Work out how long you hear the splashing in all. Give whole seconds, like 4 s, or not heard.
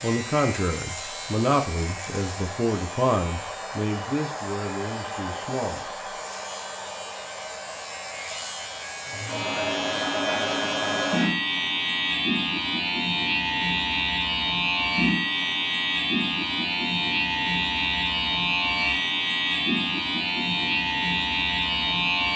not heard.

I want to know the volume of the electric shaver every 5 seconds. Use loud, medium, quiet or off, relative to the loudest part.
quiet, medium, loud, loud, loud.